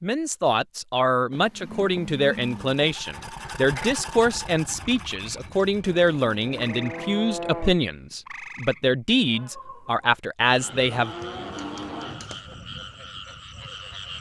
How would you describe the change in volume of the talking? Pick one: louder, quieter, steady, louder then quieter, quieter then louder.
steady.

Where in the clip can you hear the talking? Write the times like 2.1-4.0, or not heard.
0.0-11.1.